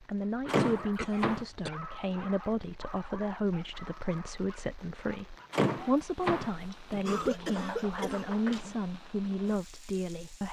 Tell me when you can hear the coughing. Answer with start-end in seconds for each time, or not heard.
0.6-1.7, 7.0-8.8.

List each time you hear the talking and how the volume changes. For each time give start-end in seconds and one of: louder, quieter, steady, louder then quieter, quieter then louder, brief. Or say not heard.
0.0-10.4 steady.